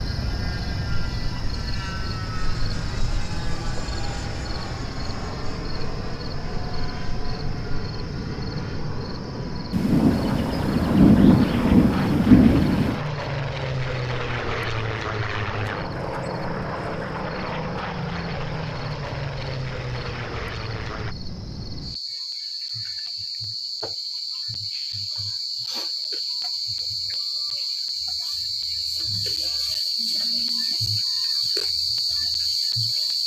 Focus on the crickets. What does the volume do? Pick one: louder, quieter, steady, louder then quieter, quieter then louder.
quieter then louder.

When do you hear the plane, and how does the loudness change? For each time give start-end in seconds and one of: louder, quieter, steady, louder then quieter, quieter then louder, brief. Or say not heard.
0.0-21.1 louder.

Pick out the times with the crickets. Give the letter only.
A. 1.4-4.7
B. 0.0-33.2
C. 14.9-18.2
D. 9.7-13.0
B.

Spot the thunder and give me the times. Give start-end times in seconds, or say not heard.
9.7-13.0.